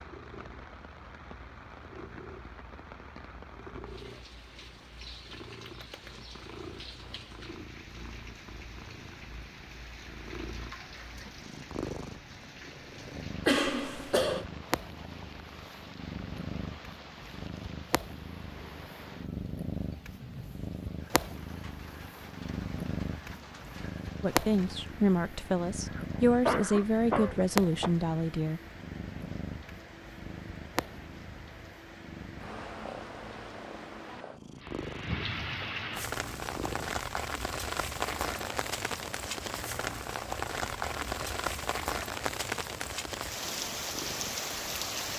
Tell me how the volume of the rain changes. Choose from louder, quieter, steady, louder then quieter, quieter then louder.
louder.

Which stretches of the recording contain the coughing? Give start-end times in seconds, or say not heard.
13.4-14.4, 25.9-27.9.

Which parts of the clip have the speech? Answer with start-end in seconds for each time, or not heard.
24.2-28.6.